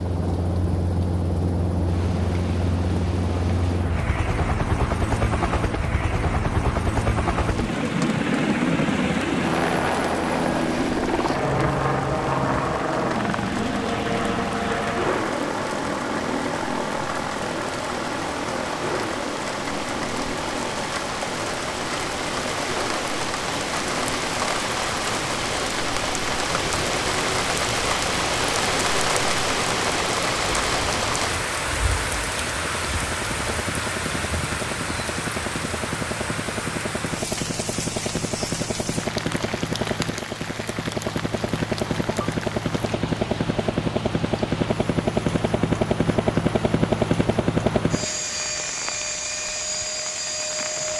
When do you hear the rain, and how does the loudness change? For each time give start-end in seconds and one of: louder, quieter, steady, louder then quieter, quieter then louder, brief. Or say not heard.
0.0-50.9 louder then quieter.